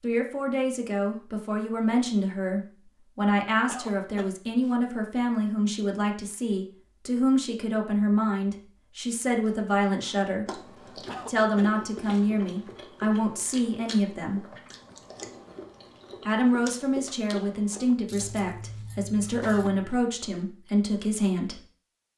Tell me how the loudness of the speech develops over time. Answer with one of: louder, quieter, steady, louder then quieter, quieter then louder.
steady.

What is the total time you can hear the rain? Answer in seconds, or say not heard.
not heard.